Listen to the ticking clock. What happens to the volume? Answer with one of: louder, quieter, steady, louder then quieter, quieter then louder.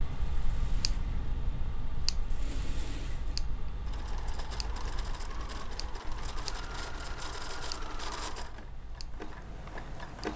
quieter.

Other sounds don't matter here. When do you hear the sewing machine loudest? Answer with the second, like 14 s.
8 s.